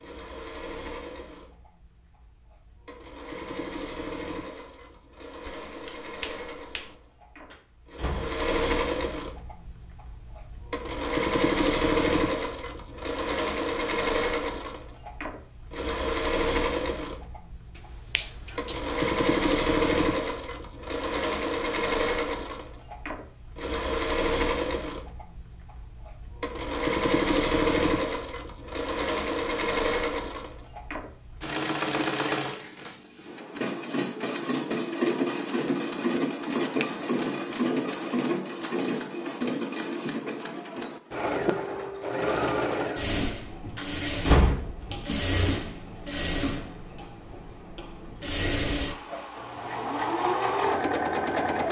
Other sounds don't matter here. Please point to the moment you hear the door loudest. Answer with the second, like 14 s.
44 s.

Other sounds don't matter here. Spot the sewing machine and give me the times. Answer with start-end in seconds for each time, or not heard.
0.0-51.6.